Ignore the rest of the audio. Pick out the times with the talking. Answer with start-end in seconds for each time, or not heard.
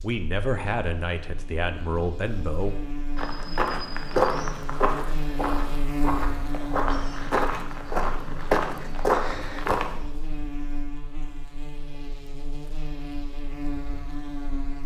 0.0-2.8.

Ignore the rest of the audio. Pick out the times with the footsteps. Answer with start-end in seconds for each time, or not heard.
3.1-10.0.